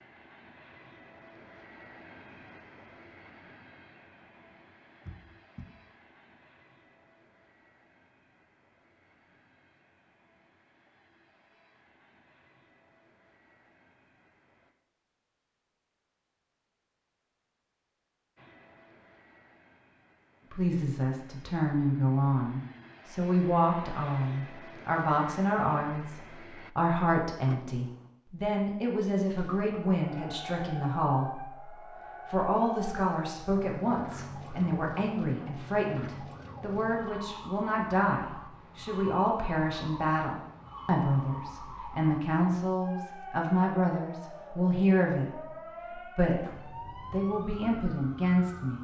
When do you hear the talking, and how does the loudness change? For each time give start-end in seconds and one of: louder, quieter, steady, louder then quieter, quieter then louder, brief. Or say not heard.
20.5-48.7 steady.